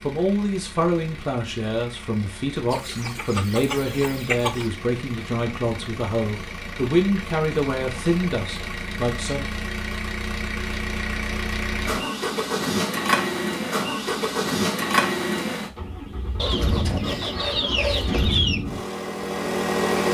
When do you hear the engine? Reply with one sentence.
The engine can be heard from 0.0 to 20.1 s.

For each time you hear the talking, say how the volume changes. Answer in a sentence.
The talking can be heard from 0.0 to 9.5 s, at a steady volume.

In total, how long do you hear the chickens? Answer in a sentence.
You can hear the chickens for 4 seconds altogether.